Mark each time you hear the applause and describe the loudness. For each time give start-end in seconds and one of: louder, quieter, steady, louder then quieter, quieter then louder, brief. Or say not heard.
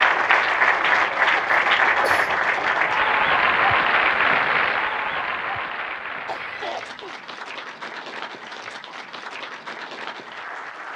0.0-10.9 quieter.